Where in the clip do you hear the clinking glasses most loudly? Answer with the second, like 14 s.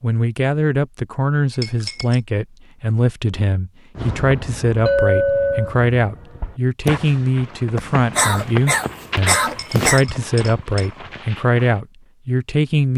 5 s.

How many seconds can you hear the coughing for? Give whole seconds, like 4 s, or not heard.
2 s.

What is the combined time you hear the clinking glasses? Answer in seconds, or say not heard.
3 s.